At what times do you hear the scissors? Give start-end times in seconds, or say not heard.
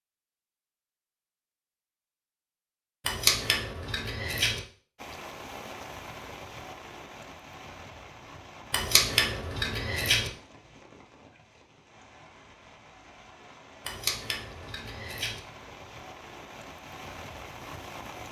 3.0-4.6, 8.7-10.3, 13.8-15.4.